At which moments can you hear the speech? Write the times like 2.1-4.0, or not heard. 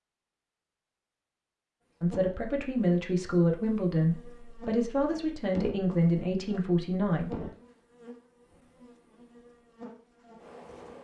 2.0-7.5.